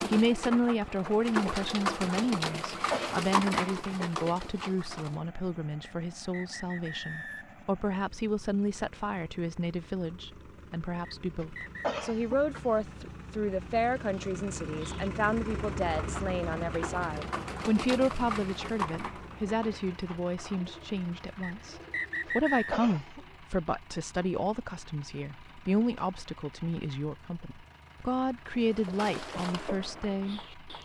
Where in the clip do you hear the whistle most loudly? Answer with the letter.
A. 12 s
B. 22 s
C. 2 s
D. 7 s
B.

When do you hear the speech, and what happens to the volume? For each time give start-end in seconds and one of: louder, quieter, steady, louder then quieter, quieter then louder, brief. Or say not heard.
0.0-30.4 steady.